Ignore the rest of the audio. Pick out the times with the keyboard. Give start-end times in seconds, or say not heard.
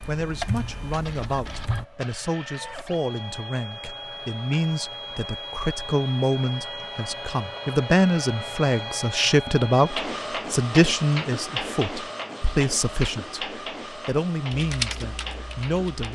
0.0-1.9, 14.5-16.1.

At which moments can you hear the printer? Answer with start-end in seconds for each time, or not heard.
0.0-16.1.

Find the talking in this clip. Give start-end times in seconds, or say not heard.
0.1-16.1.